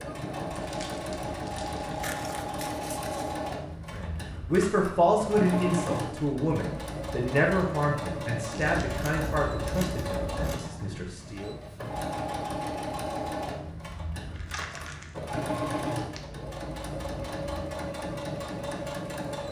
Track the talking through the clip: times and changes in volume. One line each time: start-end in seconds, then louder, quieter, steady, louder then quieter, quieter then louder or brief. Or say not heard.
3.9-11.6 quieter.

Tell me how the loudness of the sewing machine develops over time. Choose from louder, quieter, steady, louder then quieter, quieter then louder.
steady.